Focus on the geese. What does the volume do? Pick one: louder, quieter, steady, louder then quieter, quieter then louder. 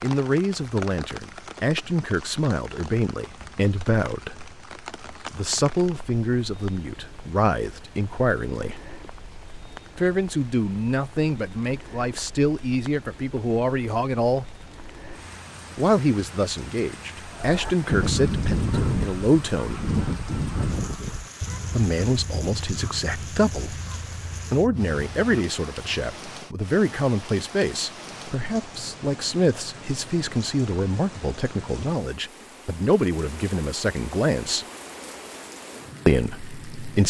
quieter.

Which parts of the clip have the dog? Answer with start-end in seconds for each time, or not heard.
not heard.